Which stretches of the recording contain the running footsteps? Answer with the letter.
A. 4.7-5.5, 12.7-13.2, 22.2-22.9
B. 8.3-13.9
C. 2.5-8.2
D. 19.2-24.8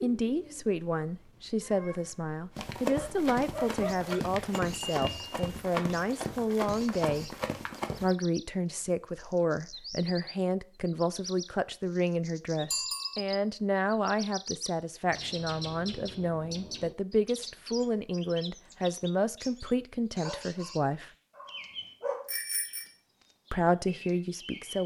C.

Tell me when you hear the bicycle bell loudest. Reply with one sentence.
The volume of the bicycle bell peaks at 13 seconds.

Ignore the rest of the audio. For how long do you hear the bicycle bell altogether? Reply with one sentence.
You can hear the bicycle bell for 2 seconds altogether.